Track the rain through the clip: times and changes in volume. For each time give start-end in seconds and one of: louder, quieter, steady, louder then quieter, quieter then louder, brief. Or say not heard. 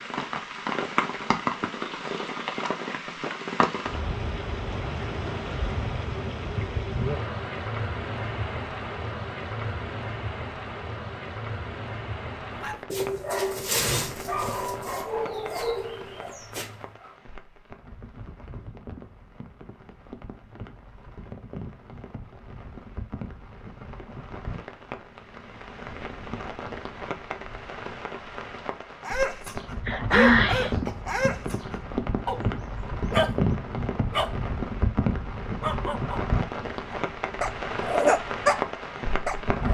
0.0-39.7 quieter then louder.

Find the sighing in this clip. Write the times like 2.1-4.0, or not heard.
29.9-30.8.